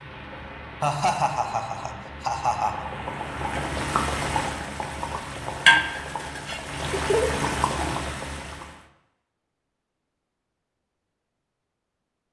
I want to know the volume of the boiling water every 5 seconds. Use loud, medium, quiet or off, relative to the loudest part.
medium, loud, off.